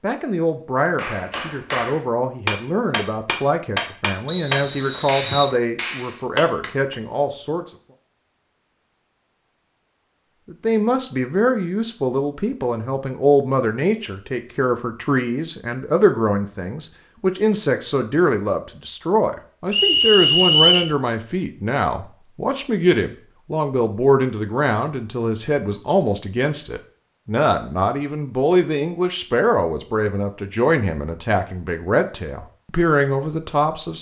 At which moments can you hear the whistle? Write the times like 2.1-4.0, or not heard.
4.2-5.5, 19.7-20.9.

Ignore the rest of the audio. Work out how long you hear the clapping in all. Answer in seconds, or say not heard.
6 s.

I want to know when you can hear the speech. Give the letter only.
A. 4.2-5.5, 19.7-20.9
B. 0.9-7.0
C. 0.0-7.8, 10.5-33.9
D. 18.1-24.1
C.